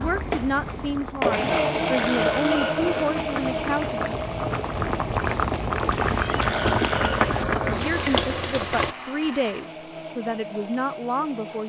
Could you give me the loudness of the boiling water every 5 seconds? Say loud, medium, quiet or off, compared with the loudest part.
medium, loud, off.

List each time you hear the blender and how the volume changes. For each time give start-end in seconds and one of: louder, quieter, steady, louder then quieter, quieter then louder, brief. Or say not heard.
0.0-11.6 quieter.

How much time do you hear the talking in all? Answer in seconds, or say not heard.
8 s.